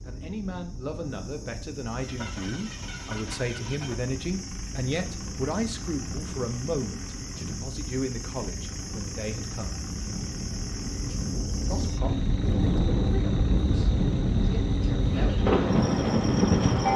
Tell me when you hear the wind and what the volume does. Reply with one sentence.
The wind can be heard from 0.0 to 16.9 s, getting louder.